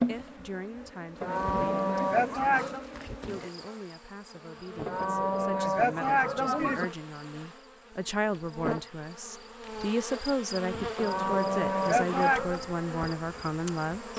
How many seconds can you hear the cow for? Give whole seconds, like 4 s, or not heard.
5 s.